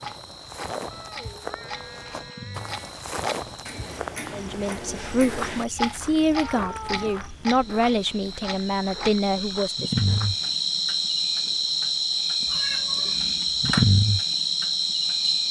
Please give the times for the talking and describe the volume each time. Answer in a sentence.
The talking can be heard from 4.3 to 9.9 s, at a steady volume.